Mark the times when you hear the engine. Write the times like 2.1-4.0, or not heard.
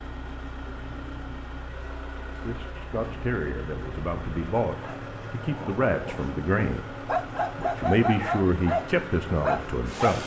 0.0-10.2.